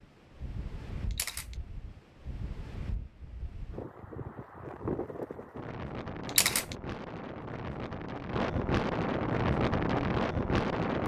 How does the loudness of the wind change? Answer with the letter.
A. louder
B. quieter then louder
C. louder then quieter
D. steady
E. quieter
A.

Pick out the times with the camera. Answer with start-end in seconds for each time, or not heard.
1.1-1.6, 6.2-6.8.